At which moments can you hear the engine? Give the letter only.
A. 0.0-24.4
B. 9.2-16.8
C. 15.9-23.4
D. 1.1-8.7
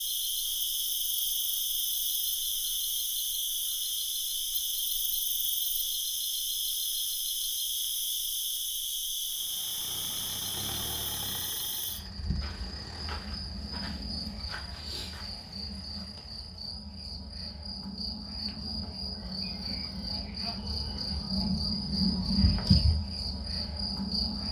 B.